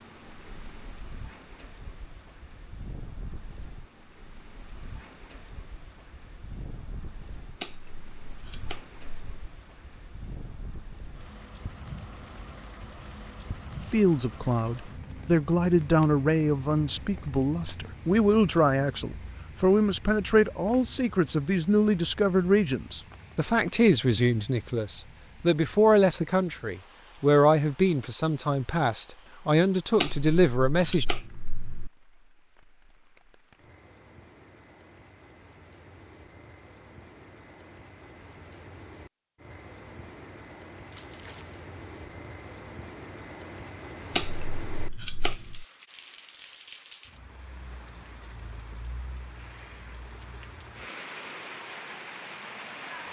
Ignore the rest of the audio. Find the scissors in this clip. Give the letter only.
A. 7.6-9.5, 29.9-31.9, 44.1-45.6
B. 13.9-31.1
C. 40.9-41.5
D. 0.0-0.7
A.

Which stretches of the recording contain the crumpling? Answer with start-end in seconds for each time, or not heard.
40.9-41.5.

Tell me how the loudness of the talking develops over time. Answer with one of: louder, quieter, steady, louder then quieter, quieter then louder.
steady.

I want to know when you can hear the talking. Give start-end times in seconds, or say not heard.
13.9-31.1.